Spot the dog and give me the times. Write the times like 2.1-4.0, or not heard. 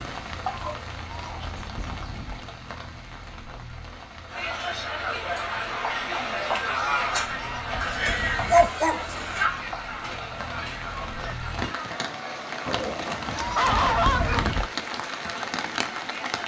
0.5-2.0, 7.8-9.4, 12.7-14.6.